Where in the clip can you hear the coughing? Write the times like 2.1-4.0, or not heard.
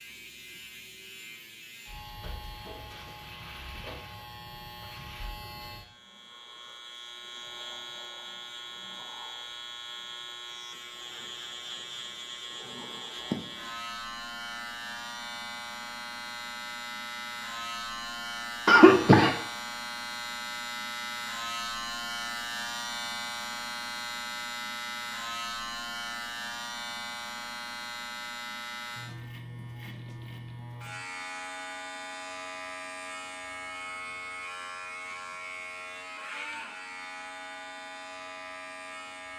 18.6-19.3.